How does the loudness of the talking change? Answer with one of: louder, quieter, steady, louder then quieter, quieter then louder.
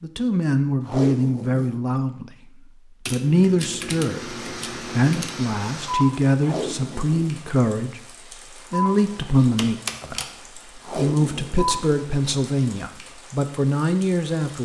steady.